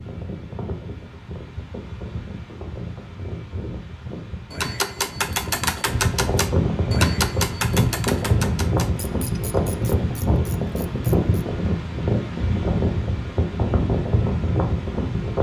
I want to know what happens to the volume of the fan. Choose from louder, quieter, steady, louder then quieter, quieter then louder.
louder.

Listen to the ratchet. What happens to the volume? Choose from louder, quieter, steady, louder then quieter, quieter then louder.
quieter.